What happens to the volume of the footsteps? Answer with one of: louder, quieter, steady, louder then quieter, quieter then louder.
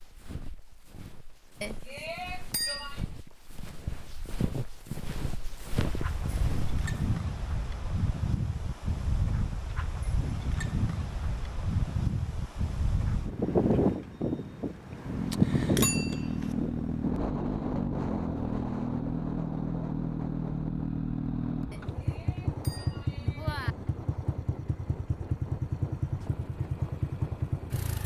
louder.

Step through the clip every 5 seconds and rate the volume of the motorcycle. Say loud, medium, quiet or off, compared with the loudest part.
off, off, off, loud, loud, loud.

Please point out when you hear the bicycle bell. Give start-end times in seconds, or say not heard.
1.6-3.0, 15.7-16.6, 21.7-23.8.